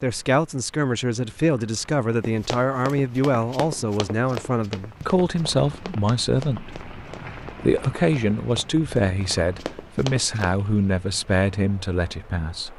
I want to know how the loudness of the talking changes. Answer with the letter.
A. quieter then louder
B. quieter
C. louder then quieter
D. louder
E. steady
E.